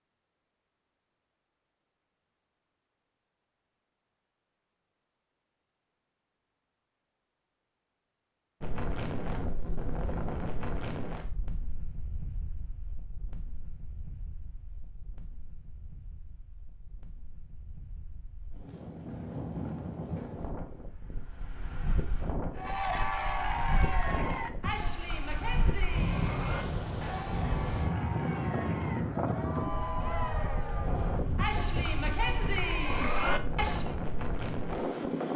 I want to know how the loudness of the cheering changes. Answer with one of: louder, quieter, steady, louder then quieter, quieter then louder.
quieter then louder.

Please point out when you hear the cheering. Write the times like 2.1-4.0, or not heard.
22.6-34.0.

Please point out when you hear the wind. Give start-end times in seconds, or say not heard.
8.6-35.3.